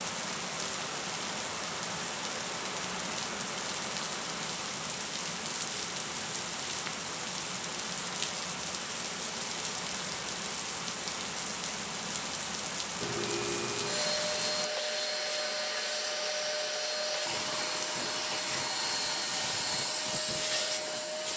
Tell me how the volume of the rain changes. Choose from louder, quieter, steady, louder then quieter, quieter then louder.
steady.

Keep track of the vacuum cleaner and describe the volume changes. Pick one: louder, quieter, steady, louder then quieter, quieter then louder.
steady.